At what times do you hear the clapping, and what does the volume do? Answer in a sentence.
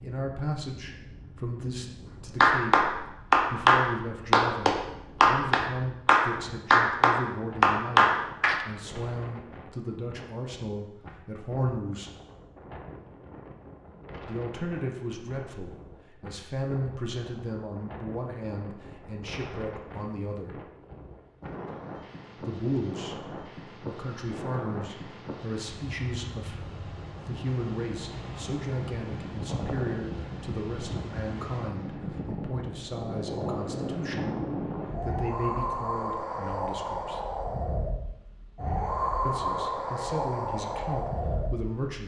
You can hear the clapping from 2.4 to 8.7 s, at a steady volume.